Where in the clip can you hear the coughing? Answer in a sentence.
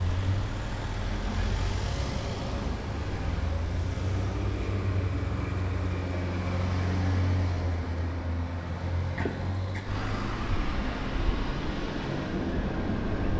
The coughing can be heard from 9.2 to 9.9 s.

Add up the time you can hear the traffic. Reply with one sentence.
You can hear the traffic for 13 seconds altogether.